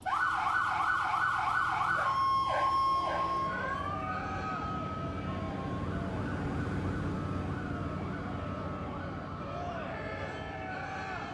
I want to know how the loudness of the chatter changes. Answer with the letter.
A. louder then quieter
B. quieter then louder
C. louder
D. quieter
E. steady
B.